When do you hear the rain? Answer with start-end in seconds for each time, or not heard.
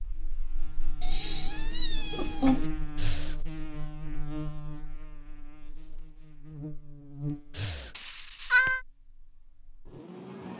not heard.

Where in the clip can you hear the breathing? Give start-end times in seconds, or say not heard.
3.0-3.4, 7.5-8.0.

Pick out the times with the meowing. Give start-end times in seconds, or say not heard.
1.0-2.6, 8.0-8.8.